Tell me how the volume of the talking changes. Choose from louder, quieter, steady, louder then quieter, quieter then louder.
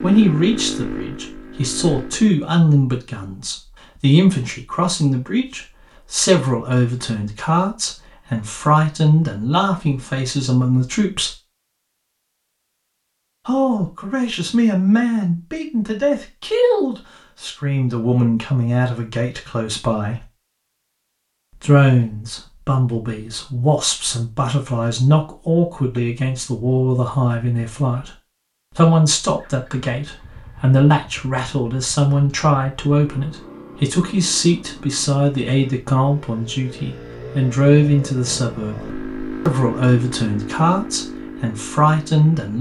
steady.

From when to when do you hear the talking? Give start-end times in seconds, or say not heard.
0.0-11.3, 13.4-20.2, 21.6-28.1, 28.8-42.5.